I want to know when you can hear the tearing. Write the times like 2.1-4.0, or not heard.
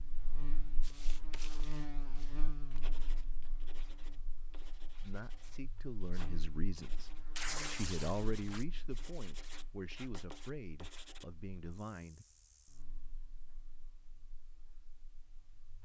7.3-8.7.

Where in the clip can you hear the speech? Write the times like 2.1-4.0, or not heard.
5.0-12.2.